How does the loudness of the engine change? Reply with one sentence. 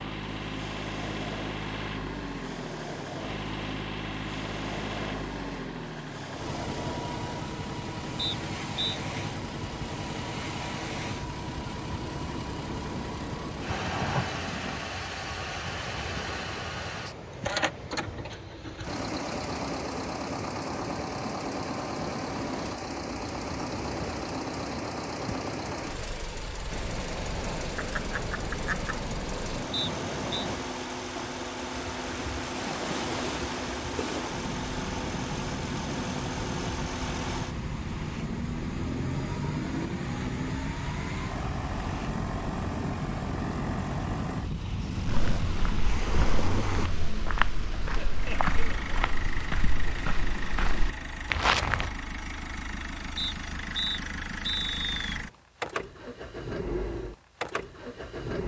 The volume of the engine stays about the same.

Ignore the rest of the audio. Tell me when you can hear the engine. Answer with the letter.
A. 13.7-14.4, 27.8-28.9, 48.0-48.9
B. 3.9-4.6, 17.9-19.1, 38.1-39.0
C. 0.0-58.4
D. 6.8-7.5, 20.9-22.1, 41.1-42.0
C.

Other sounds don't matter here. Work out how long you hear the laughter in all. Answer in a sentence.
You can hear the laughter for 3 seconds altogether.